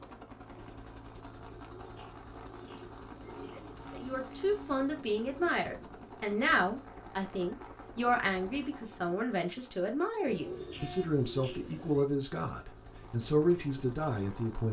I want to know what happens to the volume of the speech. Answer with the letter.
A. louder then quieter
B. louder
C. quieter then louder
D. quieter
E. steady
E.